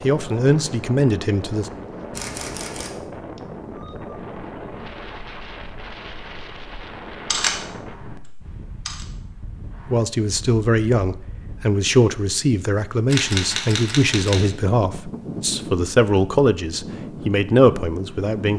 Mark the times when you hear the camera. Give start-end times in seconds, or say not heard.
2.1-3.0, 7.3-9.1, 13.1-14.5.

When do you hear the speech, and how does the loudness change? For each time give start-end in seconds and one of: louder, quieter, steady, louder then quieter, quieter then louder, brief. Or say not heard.
0.0-1.7 brief
9.9-18.5 steady.